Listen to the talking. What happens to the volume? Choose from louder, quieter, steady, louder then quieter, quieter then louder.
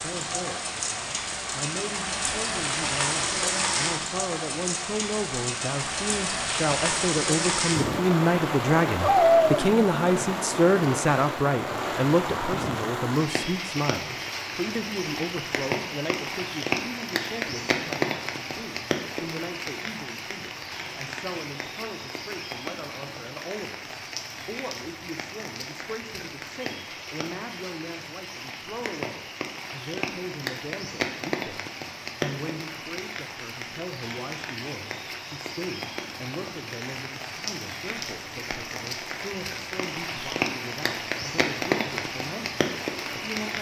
quieter.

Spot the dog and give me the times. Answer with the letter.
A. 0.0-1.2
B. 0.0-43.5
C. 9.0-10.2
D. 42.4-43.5
C.